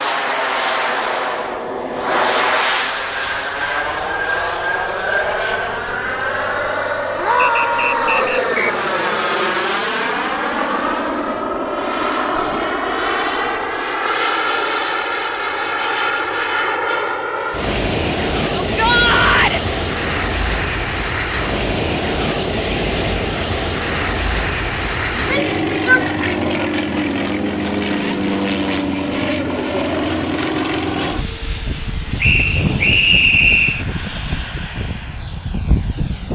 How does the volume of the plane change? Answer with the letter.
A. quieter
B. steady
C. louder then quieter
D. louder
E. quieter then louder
B.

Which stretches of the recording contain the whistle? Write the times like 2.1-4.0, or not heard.
7.3-8.8, 32.1-33.9.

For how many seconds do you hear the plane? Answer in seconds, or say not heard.
36 s.